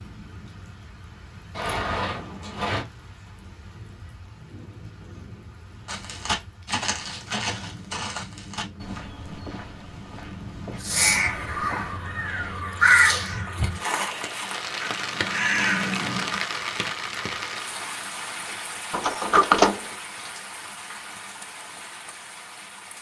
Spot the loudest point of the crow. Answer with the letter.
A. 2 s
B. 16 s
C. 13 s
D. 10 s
C.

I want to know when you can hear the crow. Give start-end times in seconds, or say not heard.
10.8-16.4.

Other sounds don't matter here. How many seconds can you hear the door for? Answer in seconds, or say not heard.
2 s.